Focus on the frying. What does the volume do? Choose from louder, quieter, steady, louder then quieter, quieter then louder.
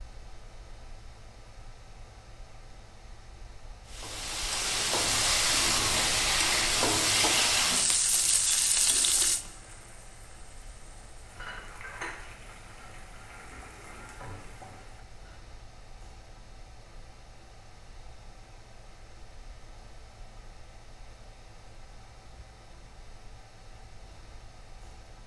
quieter.